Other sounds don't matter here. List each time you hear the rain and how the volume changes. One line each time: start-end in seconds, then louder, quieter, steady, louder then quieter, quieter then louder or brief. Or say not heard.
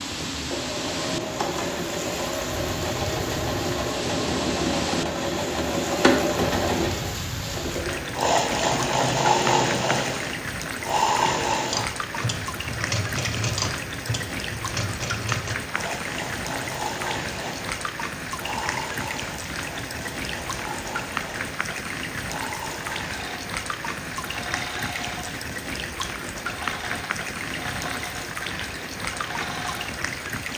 0.0-30.5 steady.